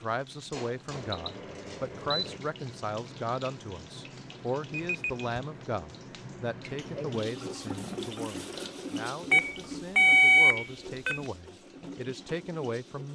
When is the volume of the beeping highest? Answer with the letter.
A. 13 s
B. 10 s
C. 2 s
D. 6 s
B.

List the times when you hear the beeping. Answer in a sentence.
You can hear the beeping from 0.9 to 2.4 s, from 4.7 to 5.2 s and from 9.3 to 11.2 s.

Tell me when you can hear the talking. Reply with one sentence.
The talking can be heard from 0.0 to 13.1 s.